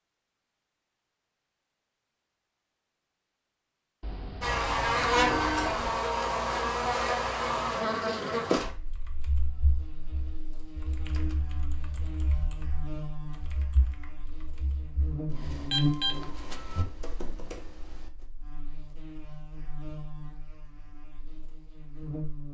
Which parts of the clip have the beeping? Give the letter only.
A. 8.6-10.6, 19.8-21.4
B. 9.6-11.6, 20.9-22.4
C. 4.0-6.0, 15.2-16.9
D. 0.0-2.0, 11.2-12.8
C.